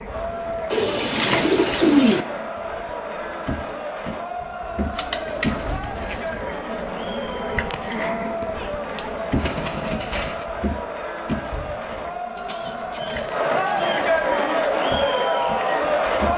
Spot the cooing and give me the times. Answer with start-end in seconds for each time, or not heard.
0.7-2.2, 5.0-6.4, 8.9-10.4, 12.3-14.4.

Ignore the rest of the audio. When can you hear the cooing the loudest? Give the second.
2 s.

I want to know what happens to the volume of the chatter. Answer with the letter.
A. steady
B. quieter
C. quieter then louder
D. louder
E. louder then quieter
D.